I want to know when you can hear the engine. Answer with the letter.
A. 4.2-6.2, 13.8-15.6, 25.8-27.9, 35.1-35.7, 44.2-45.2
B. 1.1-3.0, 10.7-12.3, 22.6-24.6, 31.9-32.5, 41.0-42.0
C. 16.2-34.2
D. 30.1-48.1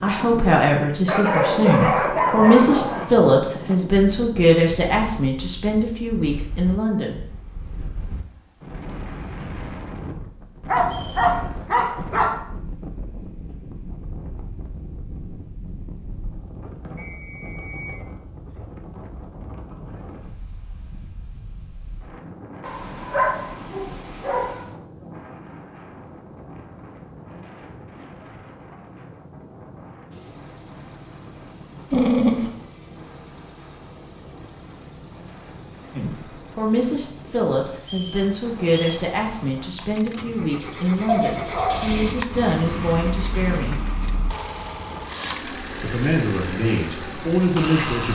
D.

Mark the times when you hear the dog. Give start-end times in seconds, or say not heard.
1.1-3.0, 10.7-12.3, 22.6-24.6, 31.9-32.5, 41.0-42.0.